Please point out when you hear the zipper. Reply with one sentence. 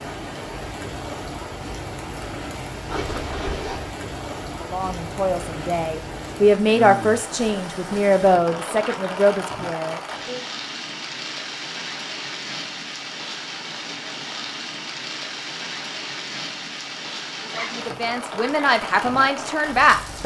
The zipper can be heard from 2.9 to 3.9 s, from 8.6 to 9.1 s and from 17.4 to 17.9 s.